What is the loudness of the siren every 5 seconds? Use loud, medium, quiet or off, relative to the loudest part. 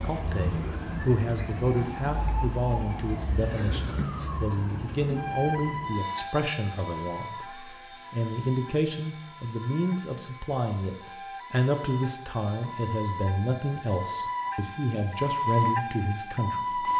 medium, medium, medium, loud.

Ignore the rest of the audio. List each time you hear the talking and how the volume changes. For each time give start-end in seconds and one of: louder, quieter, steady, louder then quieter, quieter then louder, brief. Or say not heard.
0.0-16.9 steady.